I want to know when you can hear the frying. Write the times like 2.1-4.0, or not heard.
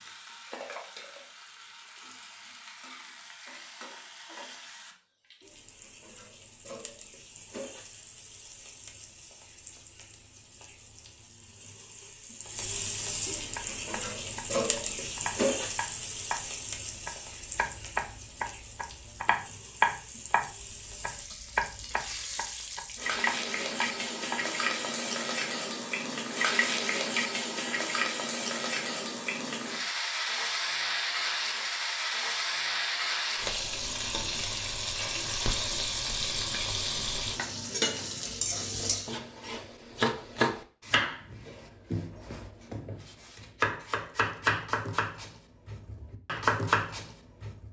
0.0-39.2.